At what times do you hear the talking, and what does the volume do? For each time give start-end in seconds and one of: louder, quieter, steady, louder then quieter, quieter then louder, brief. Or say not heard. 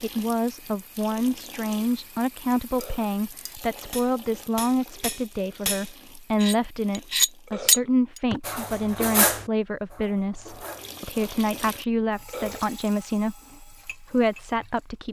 0.0-15.0 steady.